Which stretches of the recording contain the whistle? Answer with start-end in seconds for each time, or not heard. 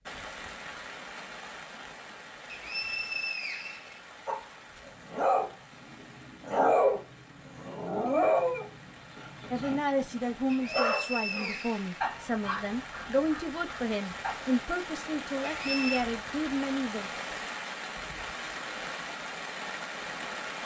2.5-4.0, 10.4-11.9, 15.6-16.1.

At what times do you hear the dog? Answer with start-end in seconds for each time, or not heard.
4.2-14.7.